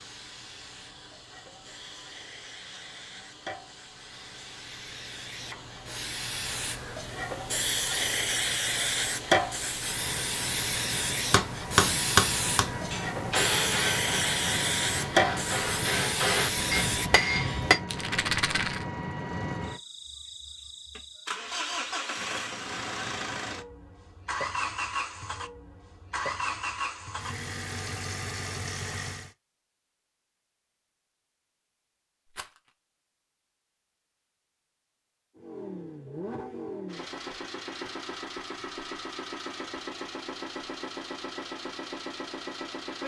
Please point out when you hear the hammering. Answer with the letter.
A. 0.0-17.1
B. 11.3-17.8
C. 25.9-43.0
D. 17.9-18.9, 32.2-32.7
B.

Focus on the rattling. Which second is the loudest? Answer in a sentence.
The volume of the rattling peaks at 18 seconds.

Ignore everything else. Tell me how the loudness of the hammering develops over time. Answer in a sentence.
The loudness of the hammering goes down, then up.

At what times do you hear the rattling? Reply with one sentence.
You can hear the rattling from 17.9 to 18.9 s and from 32.2 to 32.7 s.